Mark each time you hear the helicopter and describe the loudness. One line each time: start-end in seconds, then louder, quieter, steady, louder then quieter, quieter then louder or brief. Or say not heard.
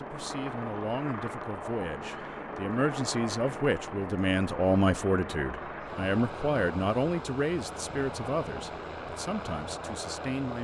0.0-10.5 steady.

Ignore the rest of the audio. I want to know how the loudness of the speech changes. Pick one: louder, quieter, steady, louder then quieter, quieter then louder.
louder then quieter.